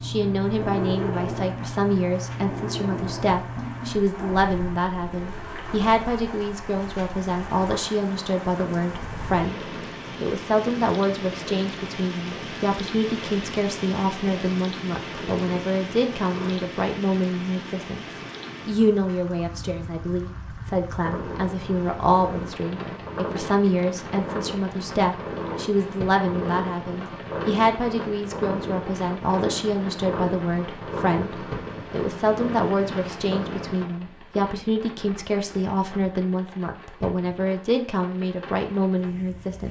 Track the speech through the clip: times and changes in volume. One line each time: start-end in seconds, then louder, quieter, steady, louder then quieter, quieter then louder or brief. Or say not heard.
0.0-18.0 steady
18.6-39.6 steady.